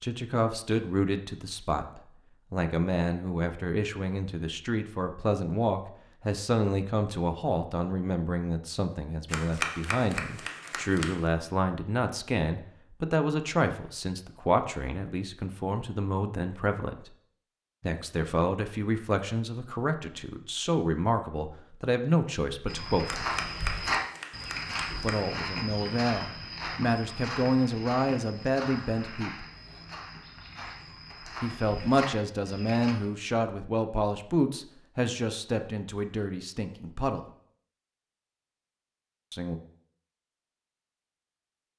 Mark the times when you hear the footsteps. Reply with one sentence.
You can hear the footsteps from 22.6 to 33.0 s.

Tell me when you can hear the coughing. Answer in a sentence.
The coughing can't be heard in this clip.